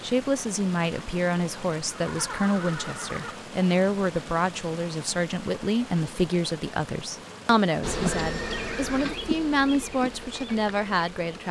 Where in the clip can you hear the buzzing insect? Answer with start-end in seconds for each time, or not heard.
7.8-11.4.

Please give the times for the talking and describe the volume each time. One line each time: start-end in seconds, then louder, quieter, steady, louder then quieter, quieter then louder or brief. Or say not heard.
0.0-11.4 steady.